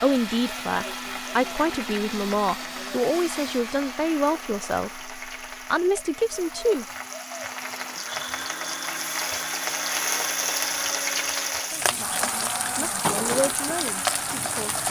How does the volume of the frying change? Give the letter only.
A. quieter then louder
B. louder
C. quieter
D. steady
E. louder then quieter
B.